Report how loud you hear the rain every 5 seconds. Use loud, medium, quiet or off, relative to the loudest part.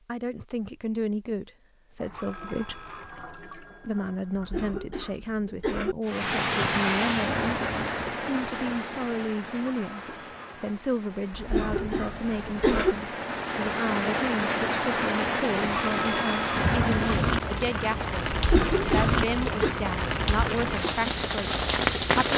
off, loud, medium, loud, loud.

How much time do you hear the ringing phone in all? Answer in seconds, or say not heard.
6 s.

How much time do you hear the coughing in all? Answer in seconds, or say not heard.
5 s.